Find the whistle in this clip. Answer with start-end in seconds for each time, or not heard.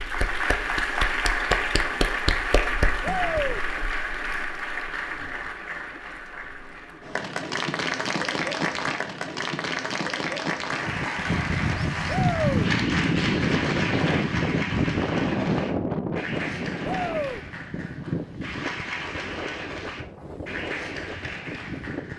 not heard.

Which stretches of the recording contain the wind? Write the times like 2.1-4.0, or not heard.
10.8-22.1.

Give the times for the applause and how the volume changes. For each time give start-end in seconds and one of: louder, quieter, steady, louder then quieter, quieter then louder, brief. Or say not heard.
0.0-22.1 quieter.